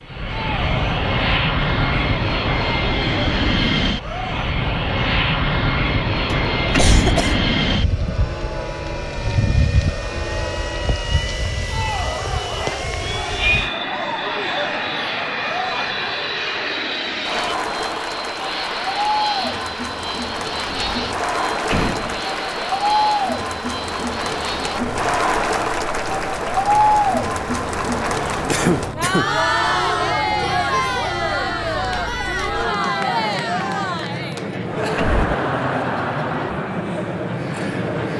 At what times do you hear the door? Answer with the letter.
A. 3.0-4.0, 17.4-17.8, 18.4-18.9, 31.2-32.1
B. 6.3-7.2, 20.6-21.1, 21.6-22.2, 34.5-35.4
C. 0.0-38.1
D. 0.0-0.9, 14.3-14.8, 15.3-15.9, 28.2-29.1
B.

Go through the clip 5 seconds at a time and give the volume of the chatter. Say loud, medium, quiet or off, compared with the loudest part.
quiet, quiet, medium, medium, loud, loud, loud, medium.